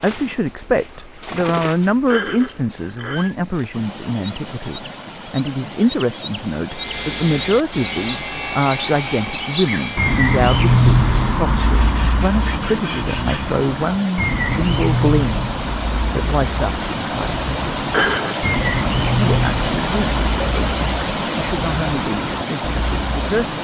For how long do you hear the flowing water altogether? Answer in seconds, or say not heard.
20 s.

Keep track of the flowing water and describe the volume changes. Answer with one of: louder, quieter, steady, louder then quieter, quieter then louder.
louder.